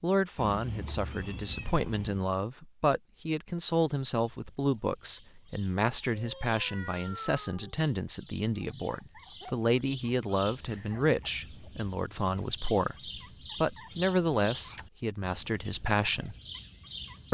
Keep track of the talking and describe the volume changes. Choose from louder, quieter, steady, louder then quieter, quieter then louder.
steady.